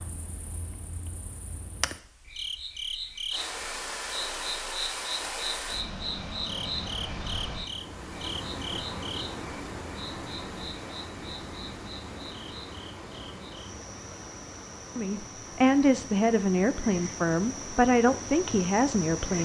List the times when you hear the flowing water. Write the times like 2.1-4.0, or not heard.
3.3-19.4.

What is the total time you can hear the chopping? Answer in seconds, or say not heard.
not heard.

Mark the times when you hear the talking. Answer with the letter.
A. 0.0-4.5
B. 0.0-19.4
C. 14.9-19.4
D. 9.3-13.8
C.